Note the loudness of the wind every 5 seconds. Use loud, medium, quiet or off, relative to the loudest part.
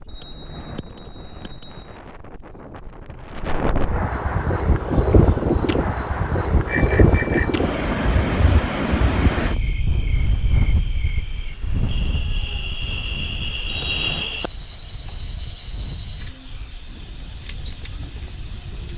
medium, loud, medium, quiet.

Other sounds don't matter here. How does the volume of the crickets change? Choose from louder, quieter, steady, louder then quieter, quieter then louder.
louder.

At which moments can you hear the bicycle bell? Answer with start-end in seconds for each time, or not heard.
0.1-2.0, 6.7-7.7, 13.7-14.2.